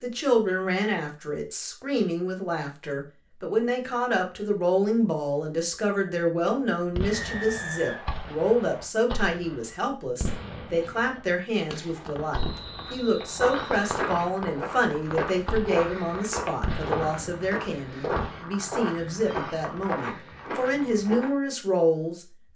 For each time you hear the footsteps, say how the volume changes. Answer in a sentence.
The footsteps can be heard from 12.8 to 21.3 s, at a steady volume.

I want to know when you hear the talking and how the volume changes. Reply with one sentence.
The talking can be heard from 0.0 to 22.5 s, at a steady volume.